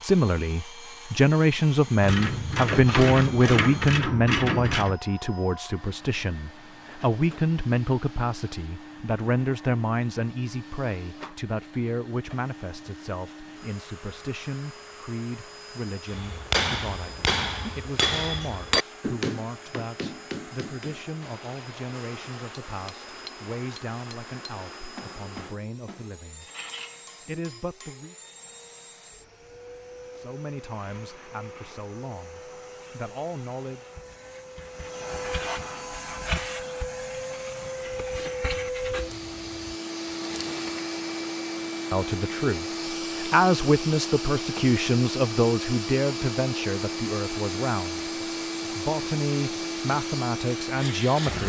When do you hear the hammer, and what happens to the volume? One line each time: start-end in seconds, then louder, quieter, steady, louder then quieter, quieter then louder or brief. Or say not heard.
16.1-28.1 quieter.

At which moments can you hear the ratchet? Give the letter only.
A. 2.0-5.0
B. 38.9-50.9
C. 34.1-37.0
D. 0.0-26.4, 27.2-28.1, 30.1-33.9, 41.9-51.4
A.